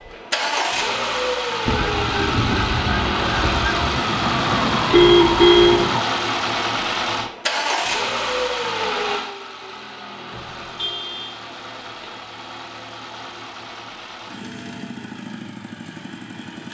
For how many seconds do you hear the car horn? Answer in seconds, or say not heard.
2 s.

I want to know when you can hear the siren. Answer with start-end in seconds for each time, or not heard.
1.6-6.0.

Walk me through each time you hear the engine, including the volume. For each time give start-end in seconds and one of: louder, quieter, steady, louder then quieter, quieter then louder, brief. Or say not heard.
0.0-16.6 quieter.